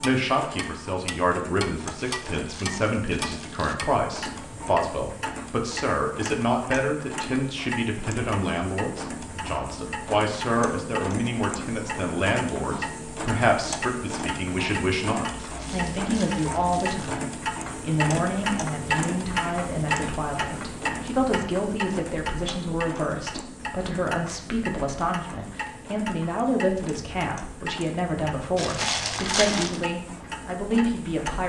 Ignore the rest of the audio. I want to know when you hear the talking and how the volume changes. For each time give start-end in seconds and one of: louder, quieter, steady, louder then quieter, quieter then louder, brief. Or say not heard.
0.0-31.4 steady.